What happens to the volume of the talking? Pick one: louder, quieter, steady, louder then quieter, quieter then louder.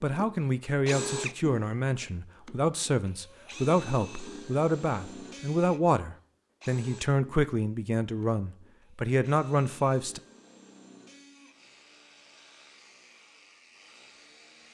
steady.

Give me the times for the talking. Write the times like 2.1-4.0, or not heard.
0.0-10.2.